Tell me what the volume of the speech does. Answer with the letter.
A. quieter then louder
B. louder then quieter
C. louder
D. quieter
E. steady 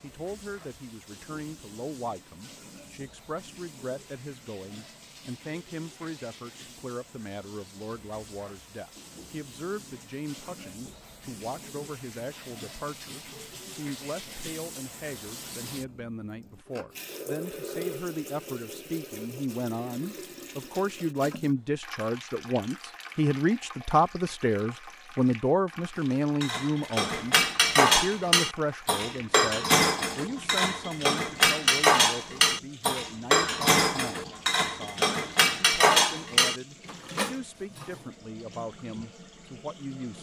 B.